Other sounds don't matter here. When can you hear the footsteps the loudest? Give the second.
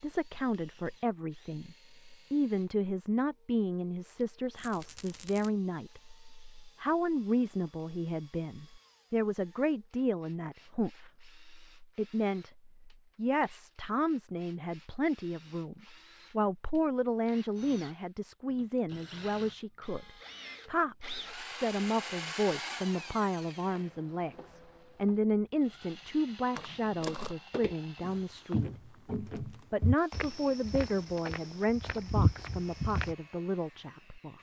32 s.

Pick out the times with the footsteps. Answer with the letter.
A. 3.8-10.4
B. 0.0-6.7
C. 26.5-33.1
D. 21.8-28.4
C.